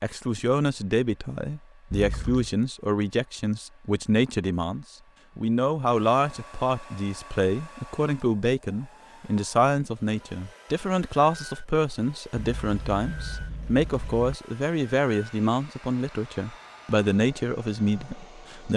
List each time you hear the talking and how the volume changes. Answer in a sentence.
The talking can be heard from 0.0 to 18.7 s, at a steady volume.